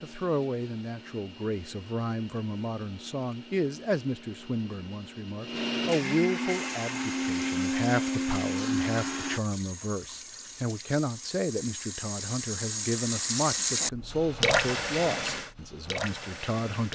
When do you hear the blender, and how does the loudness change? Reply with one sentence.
The blender can be heard from 0.0 to 9.4 s, getting louder.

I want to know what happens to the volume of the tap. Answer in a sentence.
The loudness of the tap goes up.